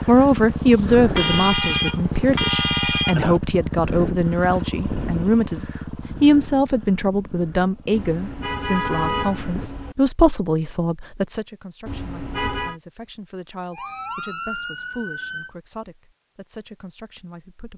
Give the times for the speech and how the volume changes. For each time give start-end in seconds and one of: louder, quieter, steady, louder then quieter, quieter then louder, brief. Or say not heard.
0.0-17.7 quieter.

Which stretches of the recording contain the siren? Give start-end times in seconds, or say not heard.
13.7-15.5.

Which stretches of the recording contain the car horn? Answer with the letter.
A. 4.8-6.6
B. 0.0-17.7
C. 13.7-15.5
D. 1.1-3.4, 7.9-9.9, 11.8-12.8
D.